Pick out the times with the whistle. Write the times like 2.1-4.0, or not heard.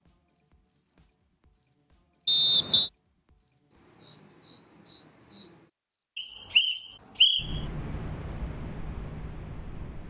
2.2-2.9, 6.2-7.6.